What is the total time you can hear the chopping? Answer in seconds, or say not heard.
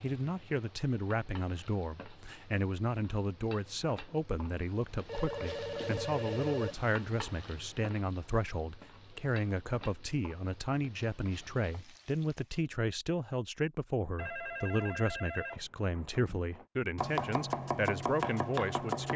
2 s.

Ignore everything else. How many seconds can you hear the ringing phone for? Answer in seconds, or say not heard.
4 s.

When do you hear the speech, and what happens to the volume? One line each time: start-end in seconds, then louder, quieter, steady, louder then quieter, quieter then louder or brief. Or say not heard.
0.0-19.1 steady.